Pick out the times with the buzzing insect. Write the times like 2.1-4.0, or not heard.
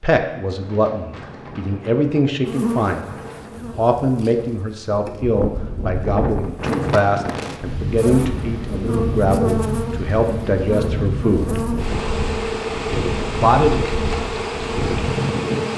2.5-15.7.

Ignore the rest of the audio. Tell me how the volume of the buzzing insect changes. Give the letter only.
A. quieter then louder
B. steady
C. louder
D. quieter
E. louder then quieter
C.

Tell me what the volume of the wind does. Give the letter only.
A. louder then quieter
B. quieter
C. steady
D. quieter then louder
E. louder
E.